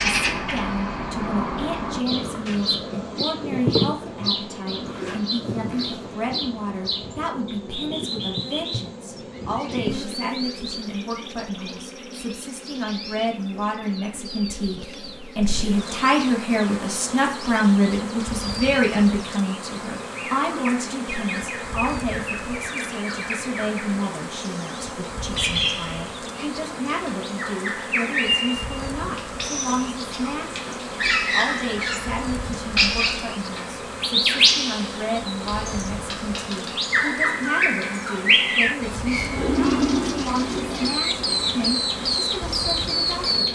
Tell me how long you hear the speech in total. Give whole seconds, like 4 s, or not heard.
43 s.